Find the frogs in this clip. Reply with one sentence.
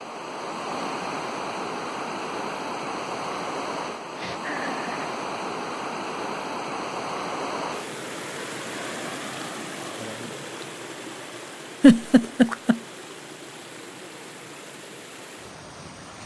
The frogs can't be heard in this clip.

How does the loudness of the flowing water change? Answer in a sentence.
The loudness of the flowing water goes down.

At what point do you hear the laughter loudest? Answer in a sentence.
The loudest moment of the laughter is at 12 seconds.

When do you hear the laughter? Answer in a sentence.
The laughter can be heard from 4.0 to 5.1 s and from 11.8 to 12.8 s.